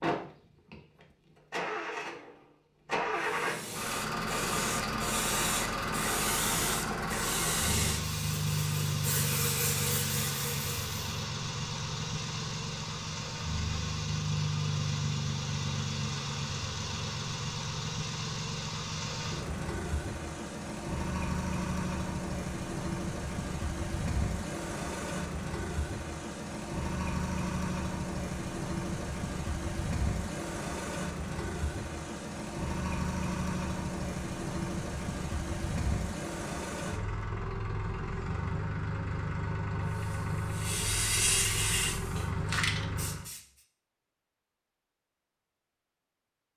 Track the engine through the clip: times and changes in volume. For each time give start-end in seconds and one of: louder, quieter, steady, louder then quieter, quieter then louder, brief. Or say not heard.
0.0-43.3 steady.